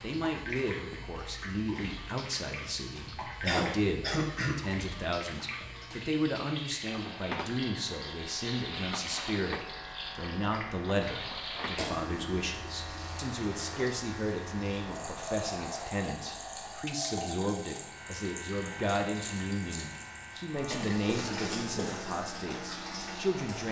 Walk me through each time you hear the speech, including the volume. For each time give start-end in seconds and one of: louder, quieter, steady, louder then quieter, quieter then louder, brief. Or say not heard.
0.0-23.6 steady.